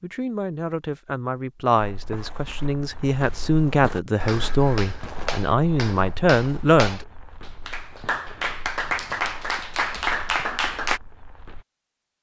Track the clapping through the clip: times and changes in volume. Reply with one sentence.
You can hear the clapping from 4.2 to 11.0 s, getting louder.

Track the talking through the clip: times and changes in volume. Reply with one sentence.
The talking can be heard from 0.0 to 7.0 s, getting louder.